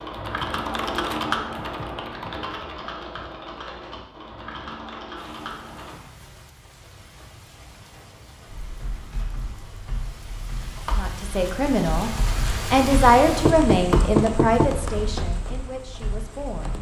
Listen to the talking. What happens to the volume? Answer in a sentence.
The loudness of the talking goes up, then down.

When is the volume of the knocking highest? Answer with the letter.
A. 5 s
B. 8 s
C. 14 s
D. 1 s
C.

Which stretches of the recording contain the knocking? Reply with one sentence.
The knocking can be heard from 13.4 to 15.3 s.